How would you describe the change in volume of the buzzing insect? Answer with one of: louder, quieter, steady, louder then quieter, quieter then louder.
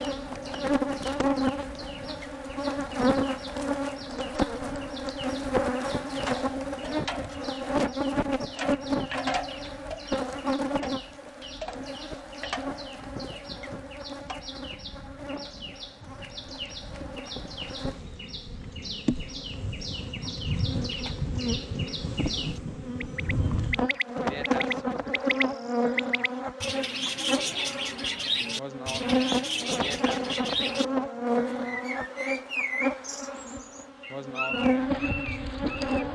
quieter then louder.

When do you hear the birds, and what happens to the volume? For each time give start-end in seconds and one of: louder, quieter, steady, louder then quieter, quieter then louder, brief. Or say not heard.
0.0-36.0 louder.